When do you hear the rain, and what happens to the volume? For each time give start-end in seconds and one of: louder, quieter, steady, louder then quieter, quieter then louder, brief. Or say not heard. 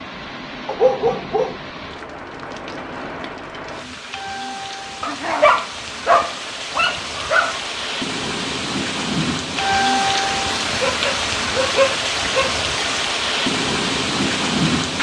0.0-14.9 louder.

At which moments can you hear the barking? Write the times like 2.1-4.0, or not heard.
0.7-2.0, 5.0-7.6, 10.7-12.7.